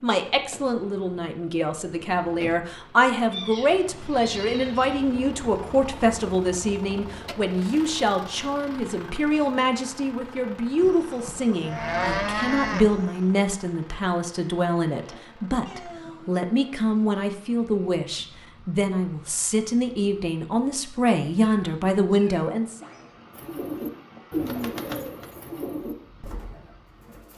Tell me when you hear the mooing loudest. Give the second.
12 s.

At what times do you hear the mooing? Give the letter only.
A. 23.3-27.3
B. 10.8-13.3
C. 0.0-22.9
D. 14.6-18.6
B.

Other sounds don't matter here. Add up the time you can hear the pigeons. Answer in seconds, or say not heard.
4 s.